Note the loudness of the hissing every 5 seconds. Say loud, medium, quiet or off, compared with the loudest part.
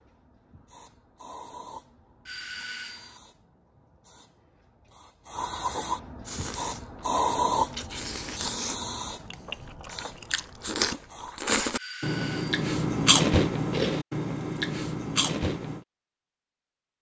quiet, loud, quiet, off.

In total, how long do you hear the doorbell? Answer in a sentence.
You can hear the doorbell for 2 seconds altogether.